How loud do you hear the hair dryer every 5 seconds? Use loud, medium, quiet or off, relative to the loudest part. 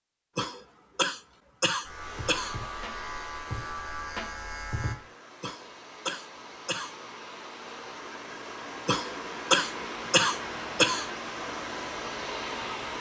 medium, medium, loud.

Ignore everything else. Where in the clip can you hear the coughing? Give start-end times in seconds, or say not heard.
0.3-2.5, 5.4-7.0, 8.8-11.1.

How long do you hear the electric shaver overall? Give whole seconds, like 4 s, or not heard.
3 s.